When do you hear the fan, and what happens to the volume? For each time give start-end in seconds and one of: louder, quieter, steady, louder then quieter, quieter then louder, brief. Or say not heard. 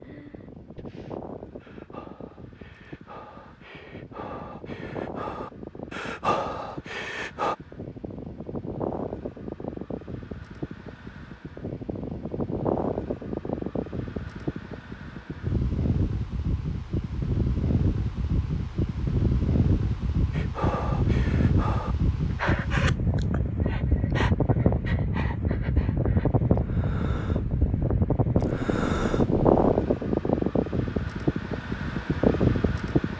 0.0-33.1 louder.